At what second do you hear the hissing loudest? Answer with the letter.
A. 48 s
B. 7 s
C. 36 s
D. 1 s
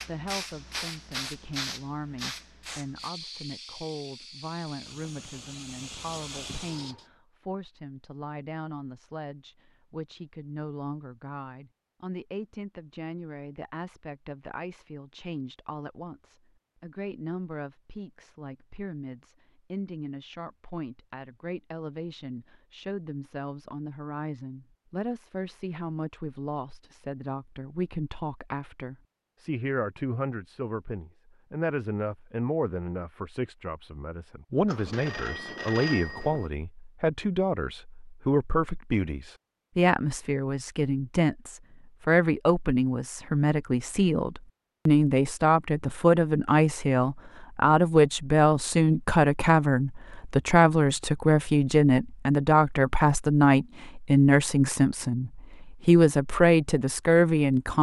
D.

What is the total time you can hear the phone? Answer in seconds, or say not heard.
2 s.